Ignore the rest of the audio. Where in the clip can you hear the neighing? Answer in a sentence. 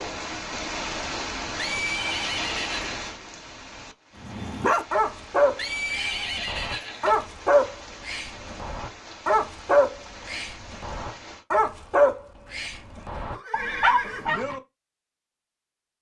You can hear the neighing from 1.6 to 3.0 s, from 5.5 to 7.2 s and from 12.4 to 14.4 s.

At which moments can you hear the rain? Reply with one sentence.
You can hear the rain from 0.0 to 11.4 s.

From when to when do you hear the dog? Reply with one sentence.
You can hear the dog from 4.2 to 14.6 s.